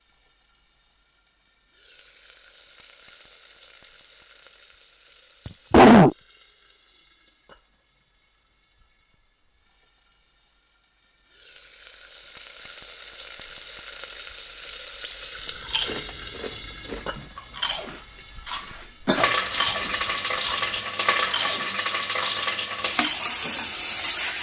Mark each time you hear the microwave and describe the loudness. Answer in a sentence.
The microwave can't be heard in this clip.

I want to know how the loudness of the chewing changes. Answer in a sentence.
The loudness of the chewing goes up, then down.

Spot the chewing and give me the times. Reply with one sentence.
You can hear the chewing from 15.4 to 23.4 s.